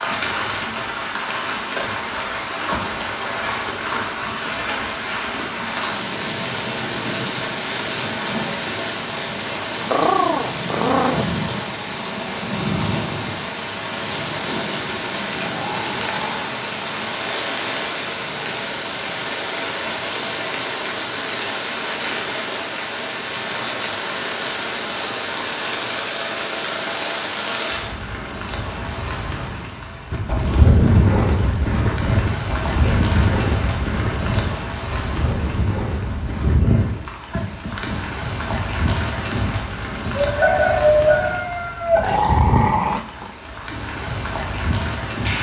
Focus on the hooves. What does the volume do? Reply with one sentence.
The volume of the hooves goes down.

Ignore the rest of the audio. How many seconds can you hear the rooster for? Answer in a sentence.
You can hear the rooster for 2 seconds altogether.